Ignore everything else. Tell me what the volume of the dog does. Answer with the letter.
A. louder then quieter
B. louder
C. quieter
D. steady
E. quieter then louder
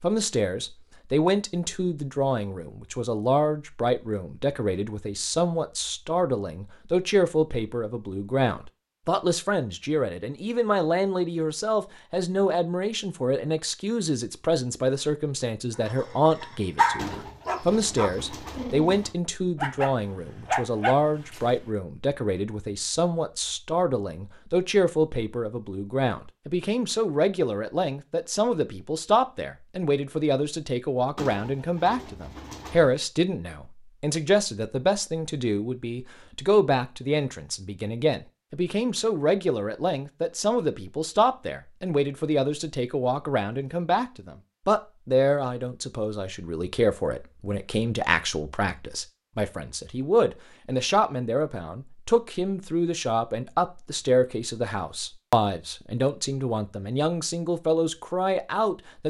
E.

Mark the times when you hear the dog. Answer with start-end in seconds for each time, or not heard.
15.8-21.5.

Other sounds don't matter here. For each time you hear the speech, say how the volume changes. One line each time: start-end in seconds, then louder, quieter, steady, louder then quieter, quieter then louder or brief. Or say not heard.
0.0-59.0 steady.